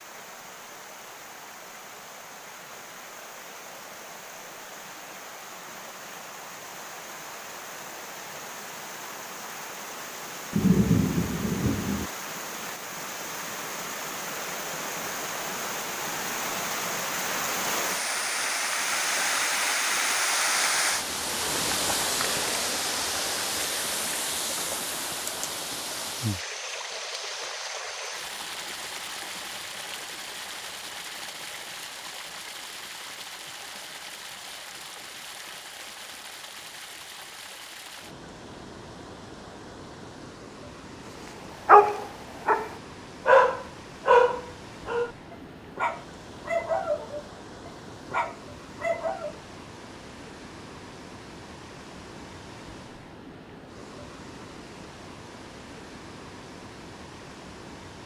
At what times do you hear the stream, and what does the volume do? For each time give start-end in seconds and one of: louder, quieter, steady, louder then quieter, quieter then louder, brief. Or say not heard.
0.0-58.0 louder then quieter.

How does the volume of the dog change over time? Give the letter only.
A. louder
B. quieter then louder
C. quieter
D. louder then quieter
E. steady
C.